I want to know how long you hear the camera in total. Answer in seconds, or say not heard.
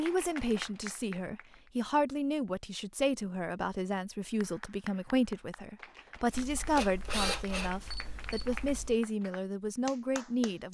3 s.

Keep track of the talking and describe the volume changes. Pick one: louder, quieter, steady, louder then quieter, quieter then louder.
steady.